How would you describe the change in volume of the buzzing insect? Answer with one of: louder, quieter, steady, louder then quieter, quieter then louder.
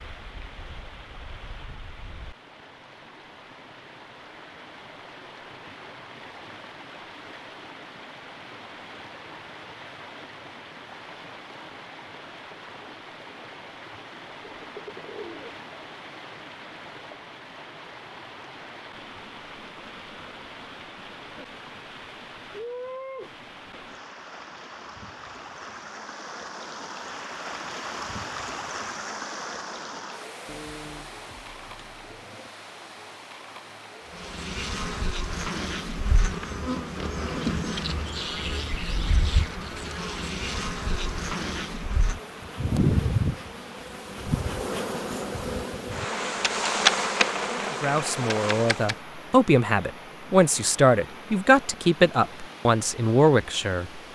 louder.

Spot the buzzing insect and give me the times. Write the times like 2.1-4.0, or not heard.
34.1-49.0.